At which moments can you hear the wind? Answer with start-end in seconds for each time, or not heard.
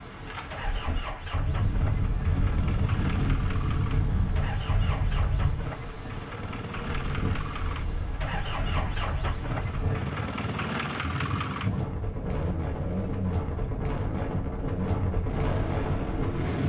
0.0-16.6.